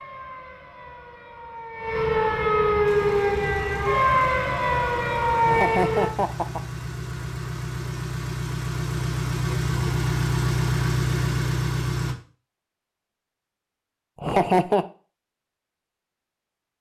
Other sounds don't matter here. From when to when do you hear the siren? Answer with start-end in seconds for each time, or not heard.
0.0-6.2.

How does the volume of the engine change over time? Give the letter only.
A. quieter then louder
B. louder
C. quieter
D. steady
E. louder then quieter
B.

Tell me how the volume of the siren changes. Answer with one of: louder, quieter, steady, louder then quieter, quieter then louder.
louder.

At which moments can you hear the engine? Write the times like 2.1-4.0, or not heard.
2.9-12.2.